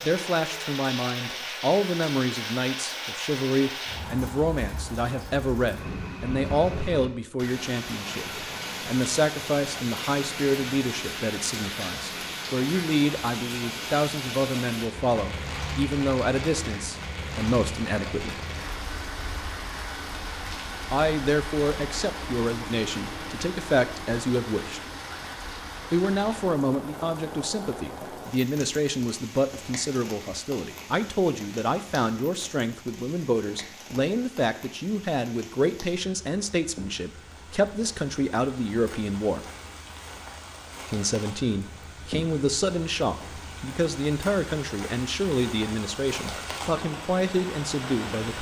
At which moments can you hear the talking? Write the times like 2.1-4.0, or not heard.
0.0-18.4, 20.9-24.9, 25.9-39.5, 40.9-48.3.